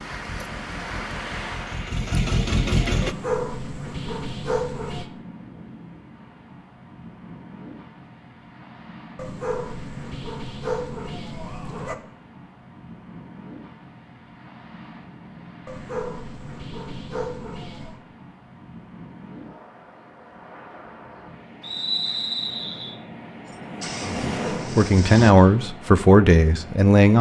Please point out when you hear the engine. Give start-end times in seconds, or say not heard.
0.0-3.1, 23.5-25.4.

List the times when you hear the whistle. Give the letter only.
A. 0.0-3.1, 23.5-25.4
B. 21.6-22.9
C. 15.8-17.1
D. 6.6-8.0
B.